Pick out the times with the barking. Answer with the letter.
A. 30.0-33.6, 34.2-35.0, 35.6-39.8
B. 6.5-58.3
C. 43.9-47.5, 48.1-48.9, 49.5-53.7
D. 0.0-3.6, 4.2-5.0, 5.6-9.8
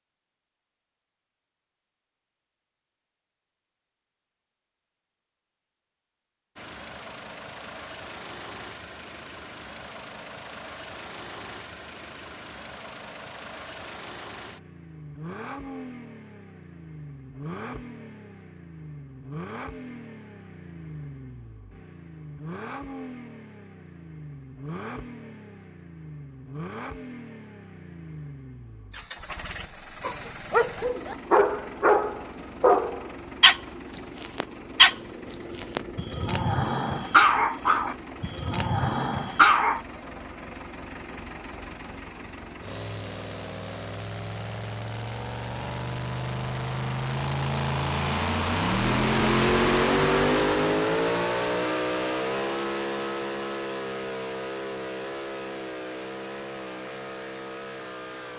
A.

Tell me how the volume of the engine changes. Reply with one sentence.
The volume of the engine goes up.